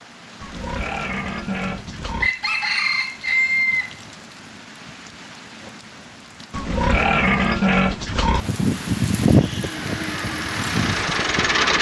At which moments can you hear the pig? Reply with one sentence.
The pig can be heard from 0.4 to 2.3 s and from 6.5 to 8.4 s.